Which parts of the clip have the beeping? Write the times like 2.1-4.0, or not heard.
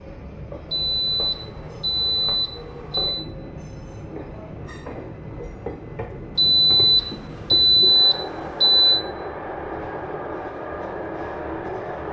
0.7-3.2, 6.3-9.1.